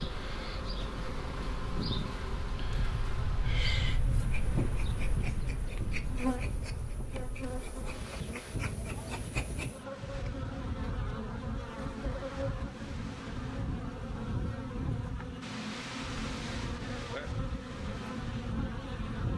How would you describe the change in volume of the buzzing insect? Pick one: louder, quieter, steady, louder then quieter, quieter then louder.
steady.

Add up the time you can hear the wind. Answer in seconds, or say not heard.
19 s.